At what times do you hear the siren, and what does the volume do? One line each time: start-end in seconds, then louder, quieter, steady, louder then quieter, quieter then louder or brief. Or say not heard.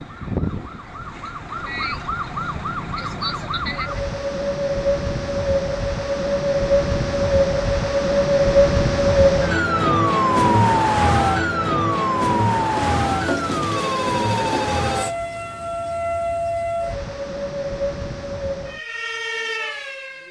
0.0-20.2 louder then quieter.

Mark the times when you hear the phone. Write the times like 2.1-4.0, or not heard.
12.8-15.2.